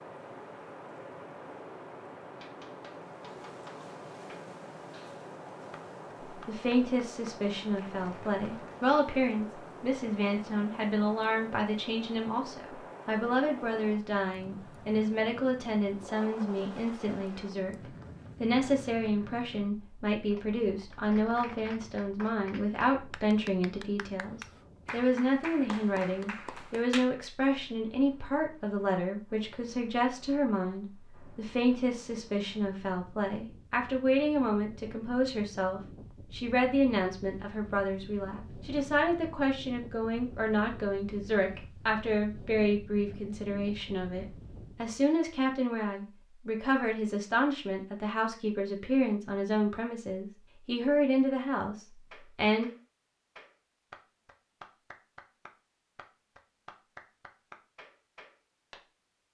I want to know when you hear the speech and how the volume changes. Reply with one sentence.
The speech can be heard from 6.3 to 17.8 s, at a steady volume; and from 18.4 to 52.7 s, at a steady volume.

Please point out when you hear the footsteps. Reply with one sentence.
The footsteps can't be heard in this clip.